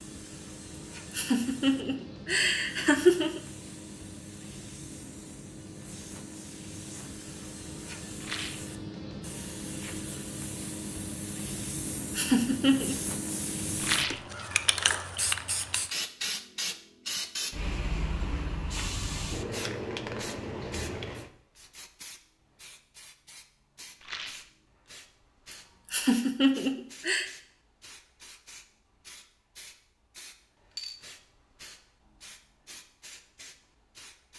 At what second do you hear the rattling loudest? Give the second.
14 s.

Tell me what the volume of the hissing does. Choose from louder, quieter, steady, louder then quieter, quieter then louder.
louder then quieter.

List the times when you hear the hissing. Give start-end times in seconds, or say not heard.
0.0-34.3.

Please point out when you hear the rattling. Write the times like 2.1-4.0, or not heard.
8.2-8.7, 13.8-14.2, 24.0-24.5.